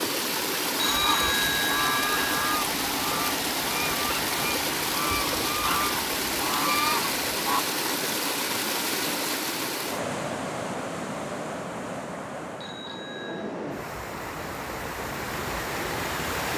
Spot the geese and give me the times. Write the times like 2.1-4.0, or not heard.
0.8-7.7.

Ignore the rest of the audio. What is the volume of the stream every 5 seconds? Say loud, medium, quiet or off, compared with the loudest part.
loud, loud, medium, loud.